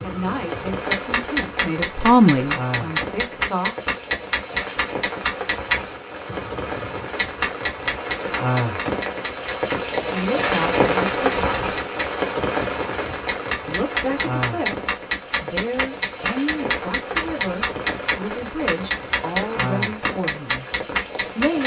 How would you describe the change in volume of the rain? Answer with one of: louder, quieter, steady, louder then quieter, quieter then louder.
louder then quieter.